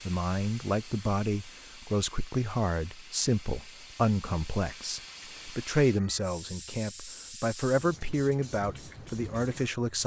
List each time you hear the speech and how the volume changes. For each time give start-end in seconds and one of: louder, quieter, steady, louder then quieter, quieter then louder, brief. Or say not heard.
0.1-10.0 steady.